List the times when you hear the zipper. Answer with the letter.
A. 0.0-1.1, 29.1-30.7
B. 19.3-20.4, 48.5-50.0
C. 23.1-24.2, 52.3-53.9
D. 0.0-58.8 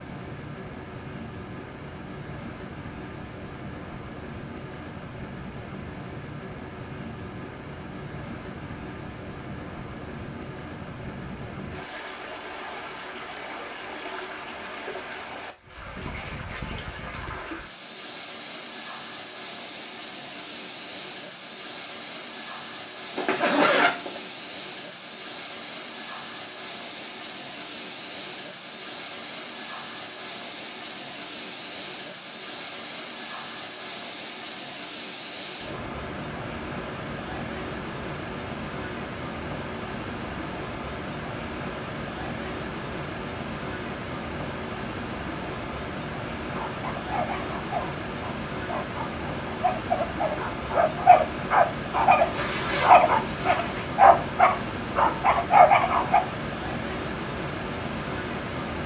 C.